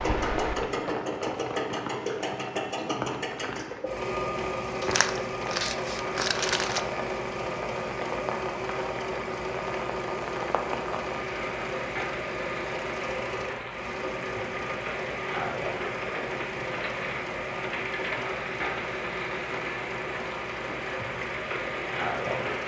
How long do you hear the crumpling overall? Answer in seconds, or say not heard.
2 s.